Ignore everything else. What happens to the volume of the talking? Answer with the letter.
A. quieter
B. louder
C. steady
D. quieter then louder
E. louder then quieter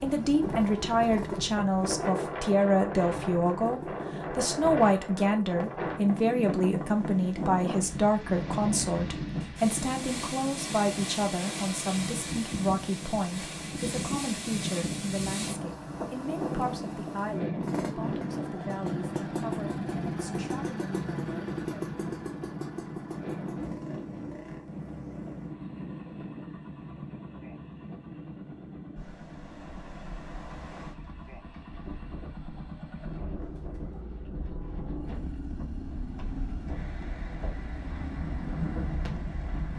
A.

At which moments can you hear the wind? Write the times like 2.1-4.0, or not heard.
0.0-39.7.